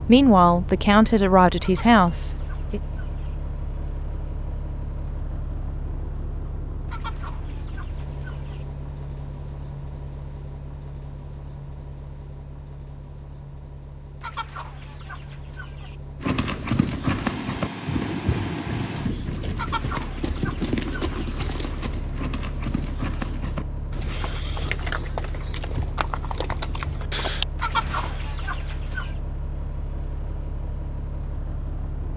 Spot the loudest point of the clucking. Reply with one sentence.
The loudest moment of the clucking is at 28 seconds.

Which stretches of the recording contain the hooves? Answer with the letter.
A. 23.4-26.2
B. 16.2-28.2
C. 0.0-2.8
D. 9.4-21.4
B.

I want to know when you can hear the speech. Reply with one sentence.
The speech can be heard from 0.0 to 2.8 s.